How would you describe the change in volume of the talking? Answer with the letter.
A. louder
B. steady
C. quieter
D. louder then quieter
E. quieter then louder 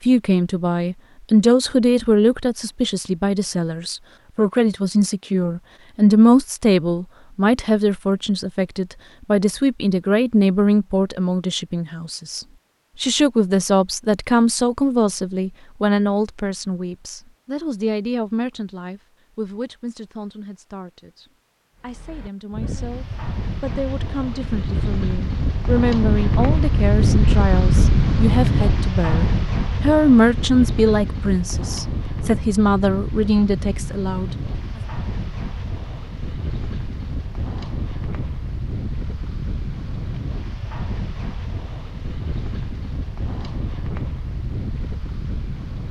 E.